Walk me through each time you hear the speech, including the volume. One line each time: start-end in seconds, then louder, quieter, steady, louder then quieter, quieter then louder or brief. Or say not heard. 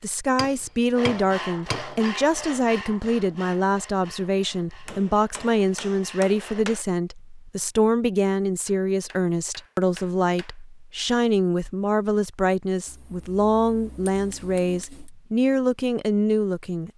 0.0-16.9 steady.